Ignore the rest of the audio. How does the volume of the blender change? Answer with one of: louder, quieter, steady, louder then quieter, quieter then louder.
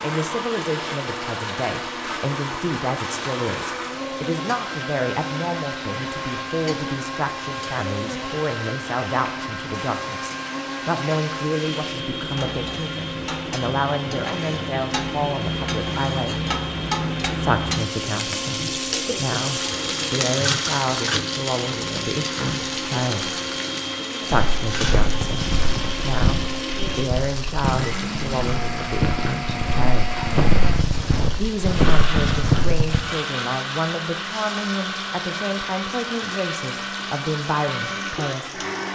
steady.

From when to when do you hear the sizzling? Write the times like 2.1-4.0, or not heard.
0.0-38.9.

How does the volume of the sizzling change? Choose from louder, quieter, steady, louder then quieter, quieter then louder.
louder then quieter.